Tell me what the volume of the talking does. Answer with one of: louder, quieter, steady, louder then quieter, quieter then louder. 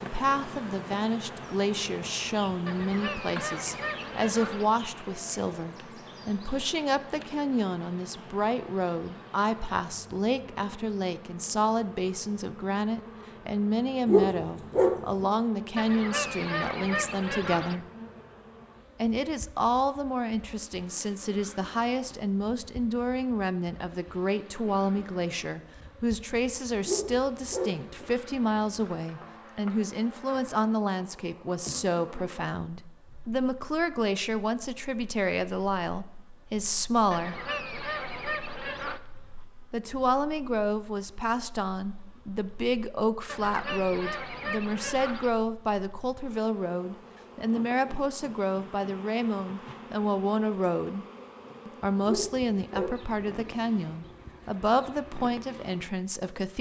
steady.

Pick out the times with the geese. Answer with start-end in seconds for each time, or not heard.
2.6-4.7, 15.8-17.8, 37.1-39.0, 43.2-45.3.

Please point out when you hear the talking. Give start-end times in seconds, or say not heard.
0.0-17.9, 19.0-37.4, 39.7-51.0, 51.6-56.5.